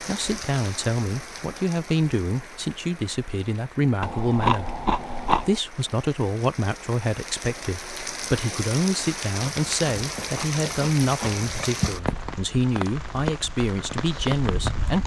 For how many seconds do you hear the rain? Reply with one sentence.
The rain can be heard for 15 seconds in total.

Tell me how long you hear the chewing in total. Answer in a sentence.
The chewing can be heard for 4 seconds in total.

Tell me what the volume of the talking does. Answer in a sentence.
The loudness of the talking stays about the same.